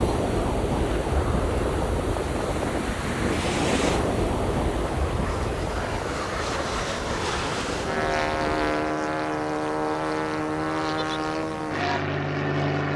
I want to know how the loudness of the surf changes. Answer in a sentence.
The volume of the surf goes down.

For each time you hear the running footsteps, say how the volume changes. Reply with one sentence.
The running footsteps can't be heard in this clip.